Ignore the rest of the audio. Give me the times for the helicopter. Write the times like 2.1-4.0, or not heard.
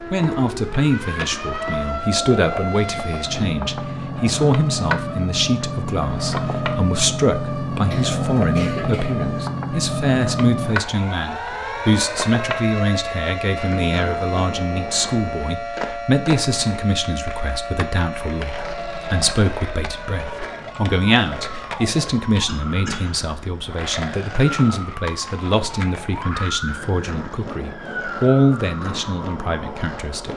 not heard.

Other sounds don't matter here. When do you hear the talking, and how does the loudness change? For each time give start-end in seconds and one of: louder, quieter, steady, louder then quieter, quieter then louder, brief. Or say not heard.
0.1-30.3 steady.